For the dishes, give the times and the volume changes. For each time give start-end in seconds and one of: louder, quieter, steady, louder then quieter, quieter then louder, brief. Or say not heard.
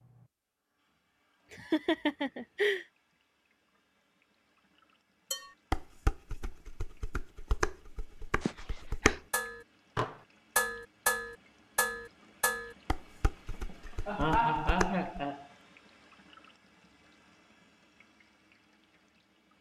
5.3-15.1 louder then quieter.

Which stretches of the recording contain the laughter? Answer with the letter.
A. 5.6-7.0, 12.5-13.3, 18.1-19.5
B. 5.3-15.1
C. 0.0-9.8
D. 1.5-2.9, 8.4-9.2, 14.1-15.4
D.